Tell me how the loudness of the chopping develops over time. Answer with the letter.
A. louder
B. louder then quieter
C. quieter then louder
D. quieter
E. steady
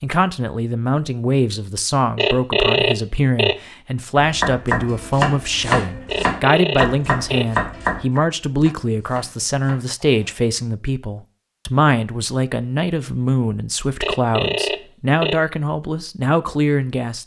D.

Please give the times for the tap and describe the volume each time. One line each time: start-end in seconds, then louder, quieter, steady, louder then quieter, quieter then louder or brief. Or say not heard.
not heard.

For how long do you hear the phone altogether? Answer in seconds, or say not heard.
4 s.